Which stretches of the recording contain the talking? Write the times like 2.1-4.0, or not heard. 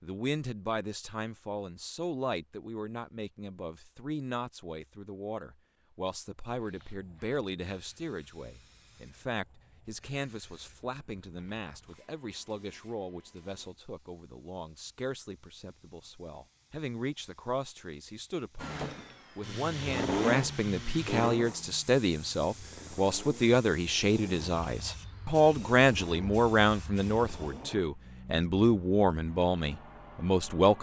0.0-30.7.